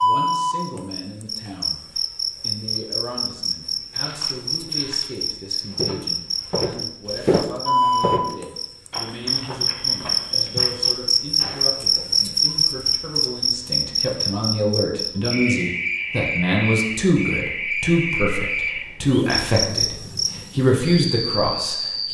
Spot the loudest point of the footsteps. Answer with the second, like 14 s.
7 s.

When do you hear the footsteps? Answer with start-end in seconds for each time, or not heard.
3.6-11.8.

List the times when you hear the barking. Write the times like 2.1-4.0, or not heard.
not heard.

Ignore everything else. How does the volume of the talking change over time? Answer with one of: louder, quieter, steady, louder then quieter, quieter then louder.
louder.